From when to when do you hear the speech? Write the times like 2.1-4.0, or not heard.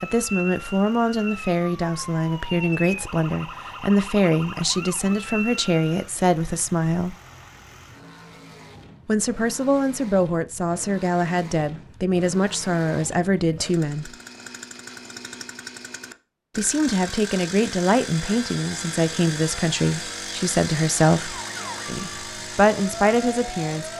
0.0-7.2, 9.1-14.1, 16.6-23.9.